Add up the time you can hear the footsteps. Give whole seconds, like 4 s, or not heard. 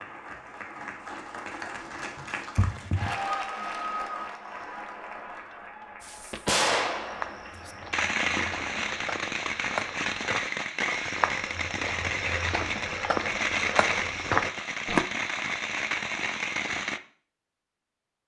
10 s.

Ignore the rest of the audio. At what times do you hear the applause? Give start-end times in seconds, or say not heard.
0.0-9.0.